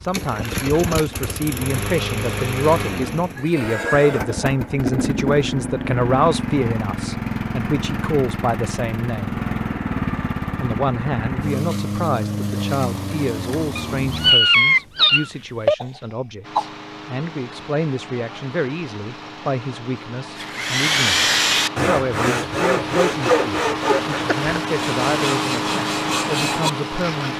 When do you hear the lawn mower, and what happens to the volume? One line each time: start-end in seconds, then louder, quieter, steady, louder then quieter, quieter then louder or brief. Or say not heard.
0.0-14.3 steady
16.4-27.3 louder.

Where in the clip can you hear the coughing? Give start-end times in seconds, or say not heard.
15.2-16.7.